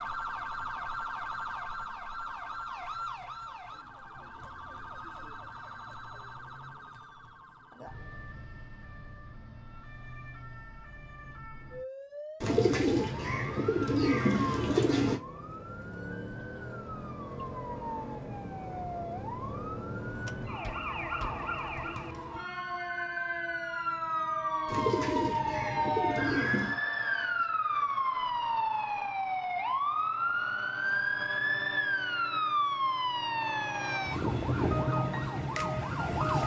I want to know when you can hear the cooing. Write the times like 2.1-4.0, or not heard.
12.4-15.2, 24.6-26.8.